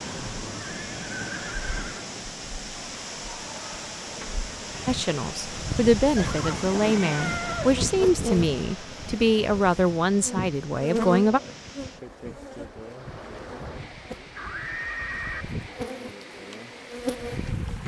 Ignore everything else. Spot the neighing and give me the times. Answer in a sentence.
The neighing can be heard from 0.5 to 2.1 s, from 6.2 to 7.8 s and from 14.3 to 15.4 s.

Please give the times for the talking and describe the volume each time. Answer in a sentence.
You can hear the talking from 4.8 to 11.4 s, at a steady volume.